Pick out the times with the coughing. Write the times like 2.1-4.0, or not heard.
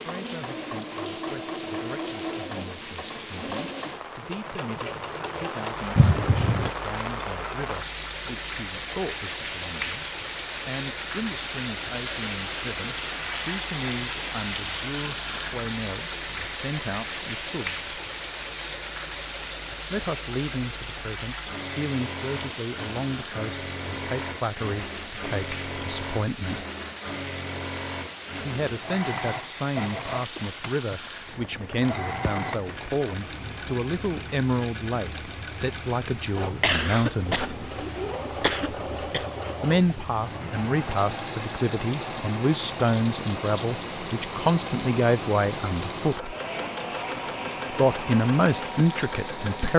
6.0-6.7, 36.6-39.2.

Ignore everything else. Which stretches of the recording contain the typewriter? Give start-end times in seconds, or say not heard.
not heard.